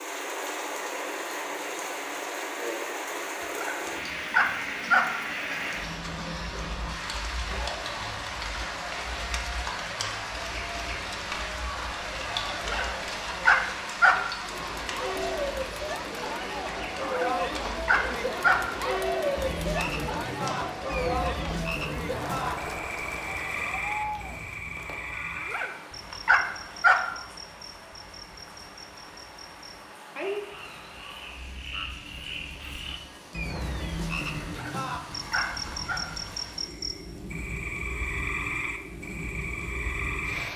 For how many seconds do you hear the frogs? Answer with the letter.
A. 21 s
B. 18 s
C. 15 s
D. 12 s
A.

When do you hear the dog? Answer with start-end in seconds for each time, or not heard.
3.5-5.1, 12.5-14.2, 17.0-18.6, 25.4-27.0, 34.5-36.0.